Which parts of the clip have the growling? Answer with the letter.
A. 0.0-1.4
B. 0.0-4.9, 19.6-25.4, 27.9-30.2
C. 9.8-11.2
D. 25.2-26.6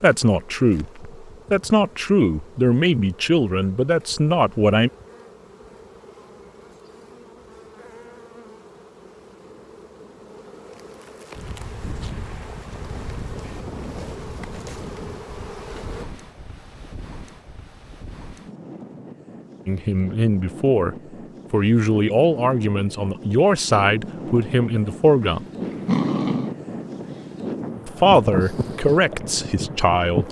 D.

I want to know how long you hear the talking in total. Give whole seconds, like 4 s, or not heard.
13 s.